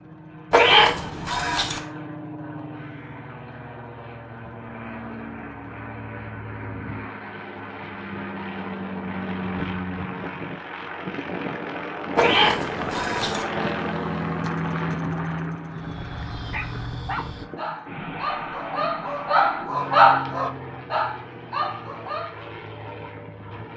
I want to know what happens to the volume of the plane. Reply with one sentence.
The volume of the plane goes up, then down.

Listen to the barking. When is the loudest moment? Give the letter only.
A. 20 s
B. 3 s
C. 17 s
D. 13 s
A.